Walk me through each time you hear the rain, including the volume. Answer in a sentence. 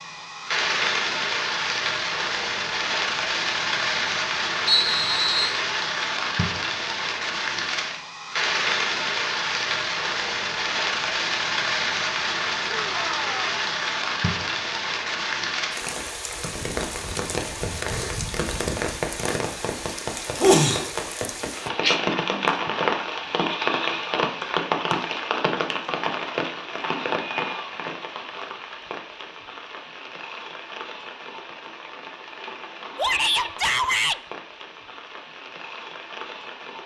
The rain can be heard from 0.0 to 36.8 s, getting quieter.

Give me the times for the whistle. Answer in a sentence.
The whistle can be heard from 4.7 to 5.6 s.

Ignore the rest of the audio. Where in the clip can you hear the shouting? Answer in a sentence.
The shouting can be heard from 12.7 to 13.7 s and from 33.0 to 34.2 s.